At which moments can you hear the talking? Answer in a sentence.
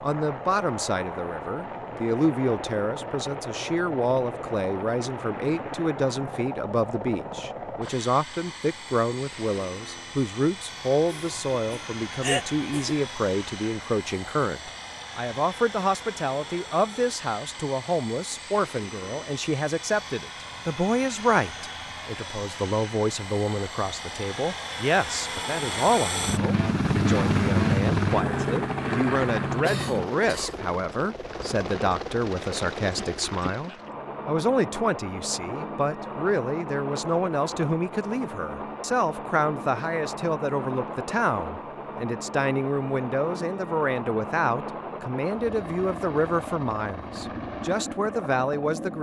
The talking can be heard from 0.0 to 48.9 s.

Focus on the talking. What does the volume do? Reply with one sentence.
The volume of the talking stays about the same.